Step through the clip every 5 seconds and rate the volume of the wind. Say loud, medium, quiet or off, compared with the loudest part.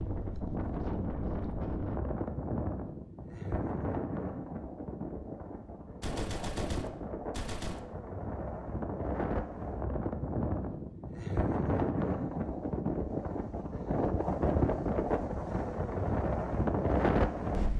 medium, medium, loud, loud.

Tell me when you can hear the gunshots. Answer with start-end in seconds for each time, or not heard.
6.0-7.8.